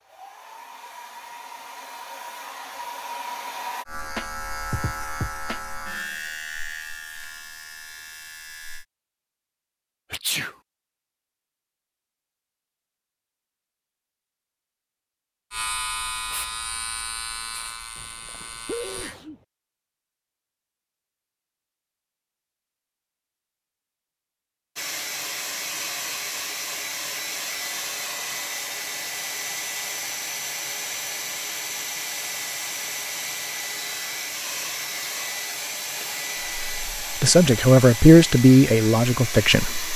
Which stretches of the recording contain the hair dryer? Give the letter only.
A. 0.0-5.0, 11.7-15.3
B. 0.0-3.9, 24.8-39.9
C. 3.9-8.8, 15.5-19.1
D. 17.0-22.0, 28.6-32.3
B.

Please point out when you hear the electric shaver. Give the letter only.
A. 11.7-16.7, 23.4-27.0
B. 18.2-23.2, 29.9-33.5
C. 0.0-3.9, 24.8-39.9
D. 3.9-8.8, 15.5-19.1
D.